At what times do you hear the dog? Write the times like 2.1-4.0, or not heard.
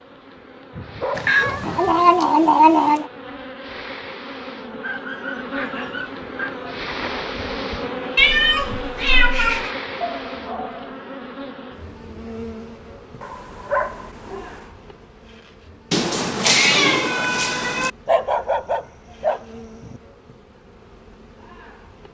0.7-2.0, 4.8-6.7, 10.0-10.9, 13.2-14.7, 18.1-20.0.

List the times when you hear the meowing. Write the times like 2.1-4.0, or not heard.
1.1-3.0, 8.2-9.7, 15.9-17.9.